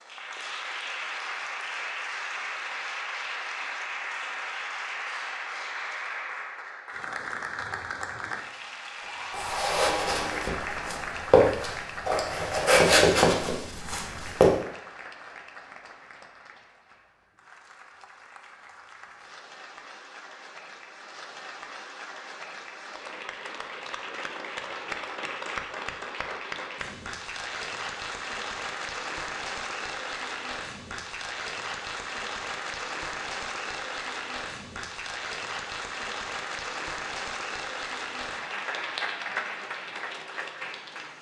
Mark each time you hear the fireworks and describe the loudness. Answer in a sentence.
The fireworks can't be heard in this clip.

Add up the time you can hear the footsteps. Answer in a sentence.
The footsteps can be heard for 5 seconds in total.